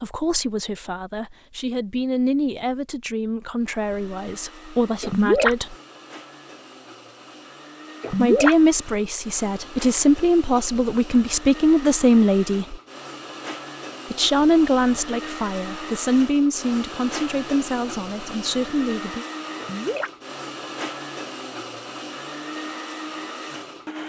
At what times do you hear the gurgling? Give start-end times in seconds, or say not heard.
5.0-5.5, 8.0-8.6, 19.6-20.1.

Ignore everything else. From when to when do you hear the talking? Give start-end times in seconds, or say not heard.
0.0-5.8, 8.1-12.8, 14.1-19.2.